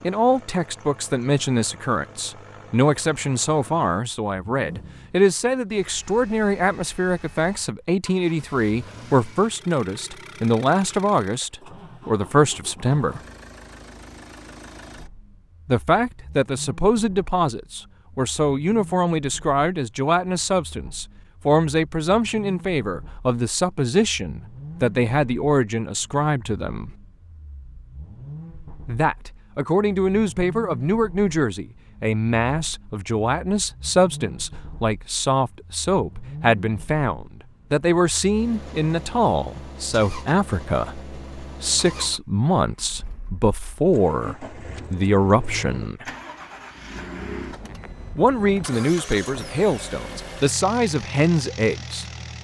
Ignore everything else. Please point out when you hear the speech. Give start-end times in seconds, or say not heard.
0.0-13.2, 15.7-26.9, 28.9-46.0, 48.1-52.0.